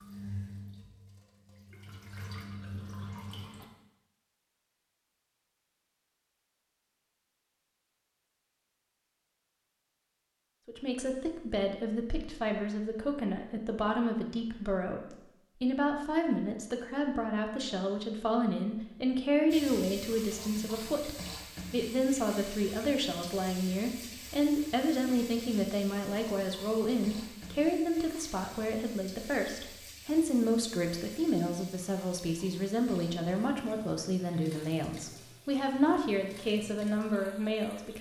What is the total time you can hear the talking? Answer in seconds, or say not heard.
27 s.